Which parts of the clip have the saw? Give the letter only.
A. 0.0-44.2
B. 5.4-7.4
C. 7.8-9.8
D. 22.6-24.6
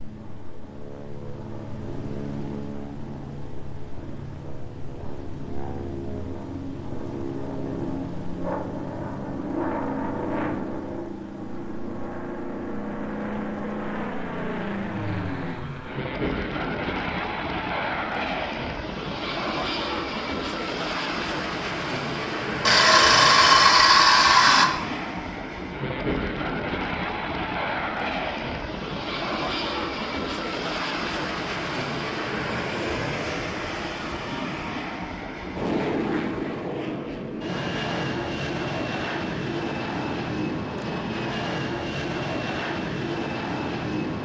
D.